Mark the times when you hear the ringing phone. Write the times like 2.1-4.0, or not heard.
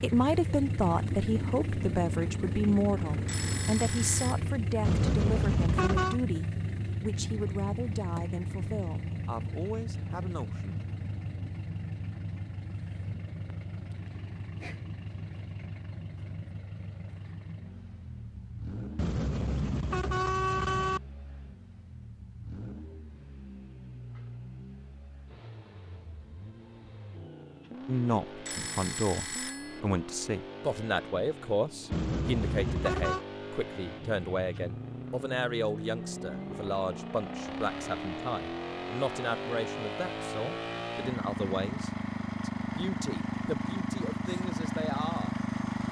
3.2-4.4, 28.4-29.8.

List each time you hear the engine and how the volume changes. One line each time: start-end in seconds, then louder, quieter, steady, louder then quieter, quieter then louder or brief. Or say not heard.
0.0-45.8 quieter then louder.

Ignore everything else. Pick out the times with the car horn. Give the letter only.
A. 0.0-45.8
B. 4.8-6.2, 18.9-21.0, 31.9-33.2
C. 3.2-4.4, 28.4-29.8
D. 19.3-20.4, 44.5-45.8
B.